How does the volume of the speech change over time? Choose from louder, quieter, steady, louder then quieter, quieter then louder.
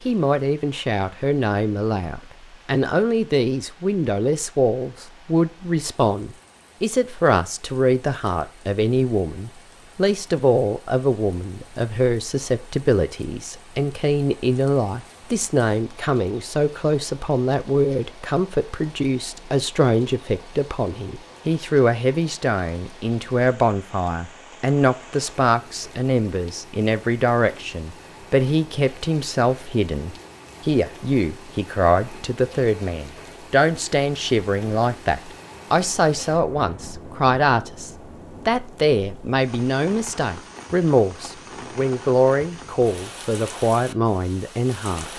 steady.